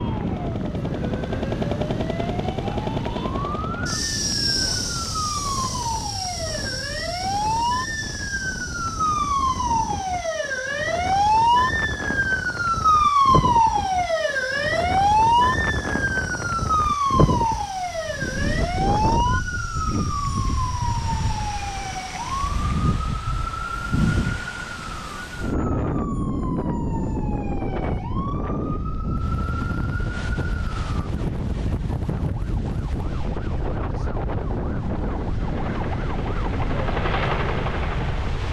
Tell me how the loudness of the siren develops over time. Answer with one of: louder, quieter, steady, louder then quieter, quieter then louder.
louder then quieter.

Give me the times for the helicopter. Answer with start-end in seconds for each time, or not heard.
0.0-22.4, 35.5-38.4.